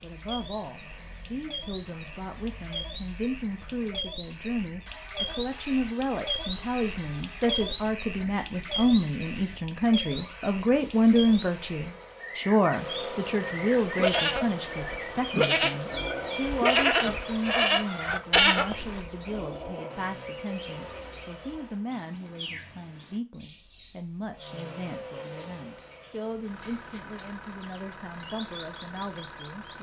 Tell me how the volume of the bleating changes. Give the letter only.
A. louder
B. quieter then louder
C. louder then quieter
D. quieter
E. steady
A.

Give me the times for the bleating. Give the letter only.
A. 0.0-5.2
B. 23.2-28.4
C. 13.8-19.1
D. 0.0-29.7
C.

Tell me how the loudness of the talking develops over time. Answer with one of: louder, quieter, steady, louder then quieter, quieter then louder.
louder then quieter.